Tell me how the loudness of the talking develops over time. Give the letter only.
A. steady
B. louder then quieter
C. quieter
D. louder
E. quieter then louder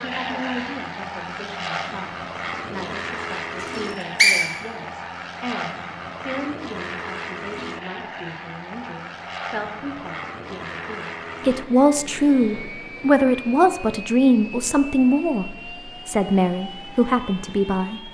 D.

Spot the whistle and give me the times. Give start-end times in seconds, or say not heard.
3.6-4.5.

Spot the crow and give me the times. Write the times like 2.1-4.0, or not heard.
not heard.